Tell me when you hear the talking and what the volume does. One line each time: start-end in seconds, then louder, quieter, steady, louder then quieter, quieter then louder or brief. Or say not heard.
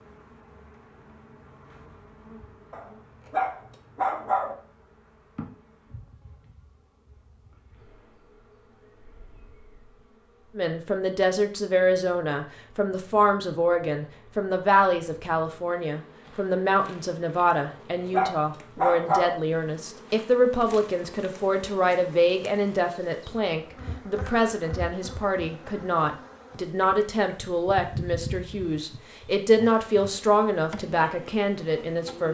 10.6-32.3 steady.